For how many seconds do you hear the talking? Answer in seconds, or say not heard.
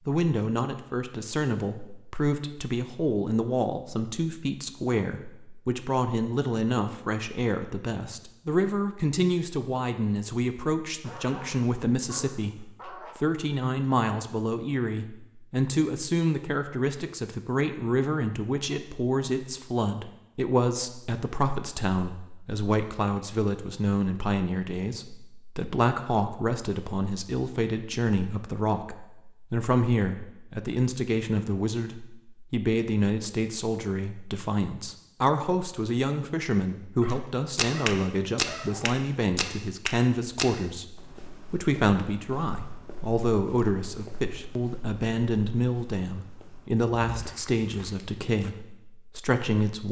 50 s.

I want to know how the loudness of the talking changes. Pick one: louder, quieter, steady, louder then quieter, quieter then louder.
steady.